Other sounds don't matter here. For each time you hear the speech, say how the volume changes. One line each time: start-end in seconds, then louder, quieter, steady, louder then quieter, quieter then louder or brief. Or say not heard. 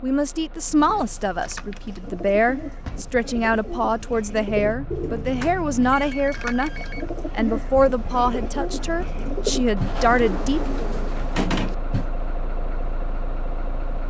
0.0-10.6 steady.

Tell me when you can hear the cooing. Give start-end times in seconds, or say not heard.
0.7-12.1.